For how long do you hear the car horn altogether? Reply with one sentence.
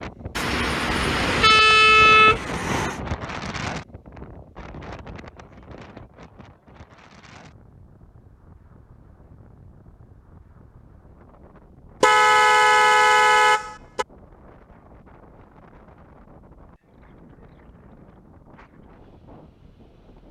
You can hear the car horn for 5 seconds altogether.